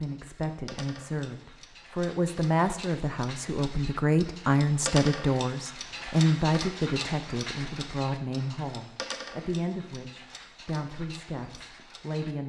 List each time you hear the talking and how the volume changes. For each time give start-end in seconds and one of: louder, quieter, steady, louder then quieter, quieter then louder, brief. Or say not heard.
0.0-12.4 quieter.